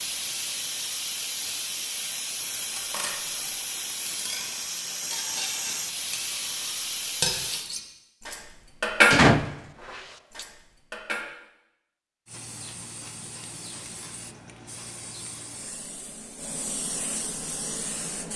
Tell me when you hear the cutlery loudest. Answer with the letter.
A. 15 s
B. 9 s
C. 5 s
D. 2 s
B.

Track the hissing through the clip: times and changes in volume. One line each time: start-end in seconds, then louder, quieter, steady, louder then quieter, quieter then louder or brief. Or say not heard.
0.0-7.7 steady
12.2-18.3 louder.